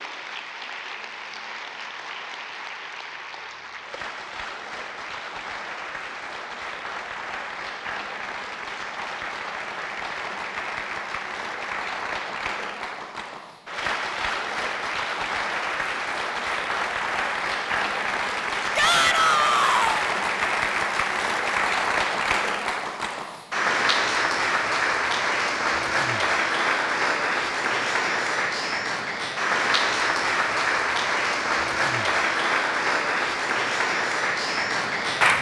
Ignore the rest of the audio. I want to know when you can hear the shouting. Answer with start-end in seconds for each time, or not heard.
18.8-20.1.